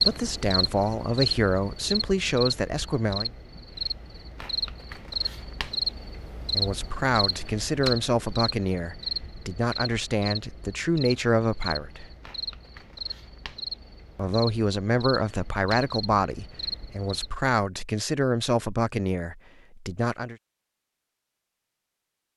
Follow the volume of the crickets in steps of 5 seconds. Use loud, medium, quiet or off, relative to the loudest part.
loud, loud, medium, medium, off.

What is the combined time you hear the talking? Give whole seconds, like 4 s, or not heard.
15 s.